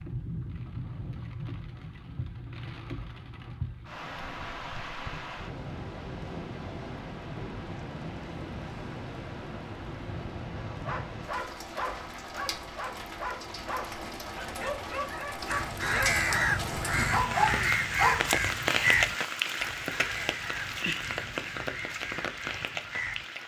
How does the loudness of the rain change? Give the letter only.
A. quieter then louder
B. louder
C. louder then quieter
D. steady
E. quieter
B.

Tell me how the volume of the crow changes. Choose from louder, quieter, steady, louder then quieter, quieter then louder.
quieter.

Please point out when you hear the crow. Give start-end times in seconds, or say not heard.
15.5-23.2.